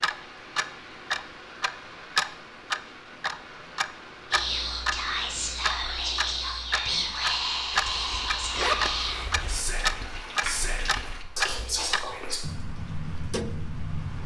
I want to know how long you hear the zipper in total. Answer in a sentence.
The zipper can be heard for 2 seconds in total.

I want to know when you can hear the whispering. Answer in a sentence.
You can hear the whispering from 4.3 to 12.4 s.